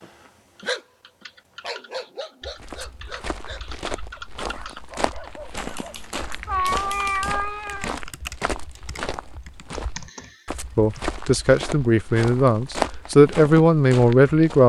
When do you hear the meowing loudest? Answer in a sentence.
The volume of the meowing peaks at 7 seconds.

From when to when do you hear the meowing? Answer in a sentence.
You can hear the meowing from 6.5 to 8.0 s.